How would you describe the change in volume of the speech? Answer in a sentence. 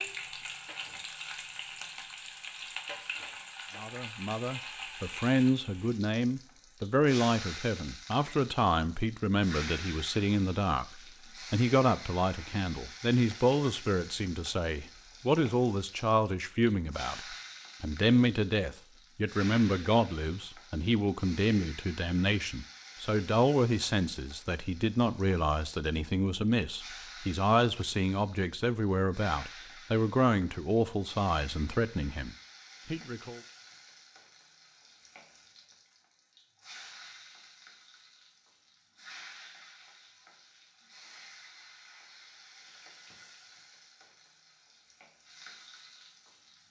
The loudness of the speech stays about the same.